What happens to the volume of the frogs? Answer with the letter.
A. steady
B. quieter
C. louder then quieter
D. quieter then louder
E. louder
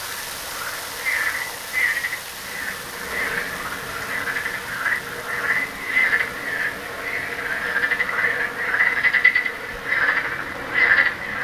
E.